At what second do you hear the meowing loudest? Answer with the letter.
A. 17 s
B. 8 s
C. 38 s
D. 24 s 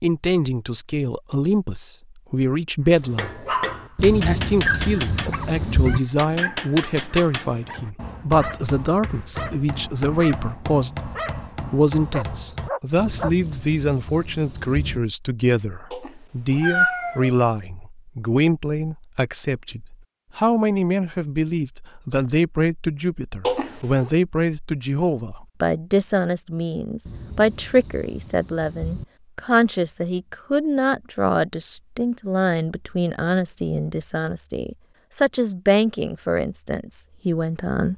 A.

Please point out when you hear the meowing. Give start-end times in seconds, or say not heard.
15.9-17.4, 23.4-24.1.